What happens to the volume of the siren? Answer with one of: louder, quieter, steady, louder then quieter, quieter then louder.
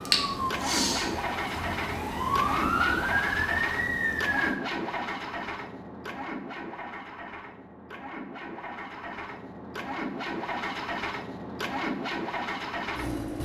quieter then louder.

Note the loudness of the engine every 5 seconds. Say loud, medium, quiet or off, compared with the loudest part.
loud, medium, loud.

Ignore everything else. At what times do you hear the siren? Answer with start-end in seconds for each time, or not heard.
0.0-4.6.